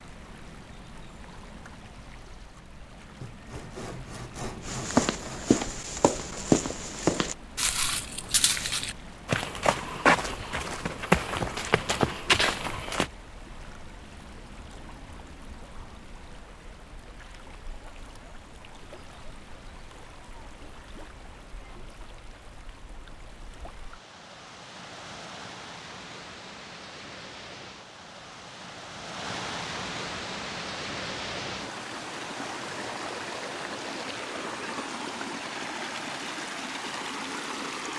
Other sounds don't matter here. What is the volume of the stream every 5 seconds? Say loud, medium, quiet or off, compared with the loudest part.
quiet, quiet, quiet, quiet, quiet, medium, loud, loud.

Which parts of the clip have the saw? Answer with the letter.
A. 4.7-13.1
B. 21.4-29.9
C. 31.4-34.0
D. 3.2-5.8
D.